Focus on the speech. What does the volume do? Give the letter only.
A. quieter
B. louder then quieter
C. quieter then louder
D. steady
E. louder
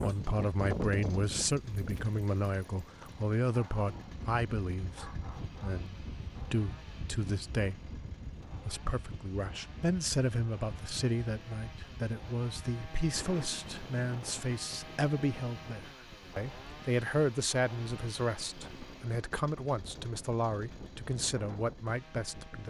D.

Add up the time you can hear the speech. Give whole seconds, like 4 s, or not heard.
22 s.